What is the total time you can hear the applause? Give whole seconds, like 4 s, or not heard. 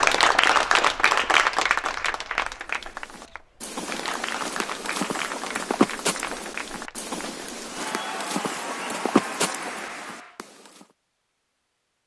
10 s.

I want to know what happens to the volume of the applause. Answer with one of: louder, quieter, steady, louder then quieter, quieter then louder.
quieter.